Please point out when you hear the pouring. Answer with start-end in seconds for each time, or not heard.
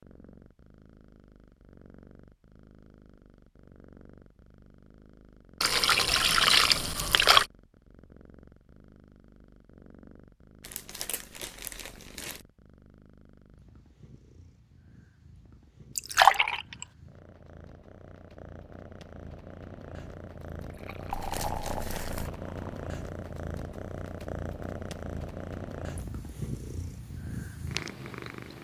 5.6-7.5, 15.9-16.9, 20.6-22.9.